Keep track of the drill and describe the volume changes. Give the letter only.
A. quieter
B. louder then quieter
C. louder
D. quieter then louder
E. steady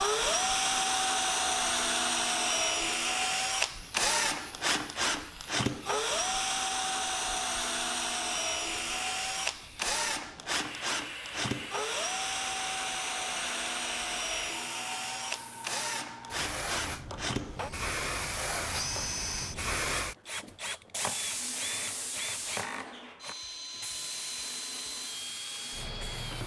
A.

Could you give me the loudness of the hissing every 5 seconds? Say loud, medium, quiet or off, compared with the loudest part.
quiet, quiet, loud, loud, loud, medium.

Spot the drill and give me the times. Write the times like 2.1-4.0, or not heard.
0.0-26.4.